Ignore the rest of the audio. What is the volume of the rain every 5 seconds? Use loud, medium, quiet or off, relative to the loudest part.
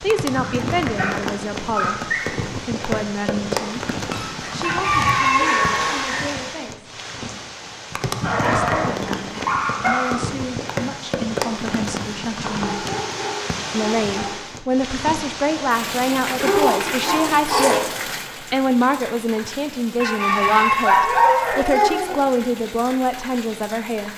loud, loud, loud, loud, medium.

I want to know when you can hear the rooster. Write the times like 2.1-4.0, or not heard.
4.6-6.2, 19.9-21.6.